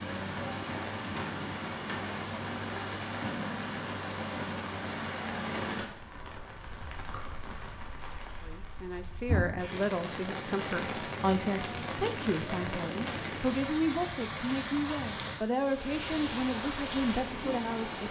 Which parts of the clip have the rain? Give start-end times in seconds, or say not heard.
0.0-18.0.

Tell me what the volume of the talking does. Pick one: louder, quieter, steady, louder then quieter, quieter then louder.
steady.